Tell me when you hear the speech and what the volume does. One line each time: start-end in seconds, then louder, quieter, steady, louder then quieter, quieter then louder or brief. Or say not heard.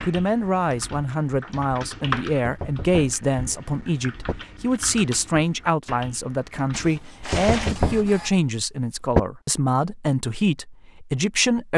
0.0-11.7 steady.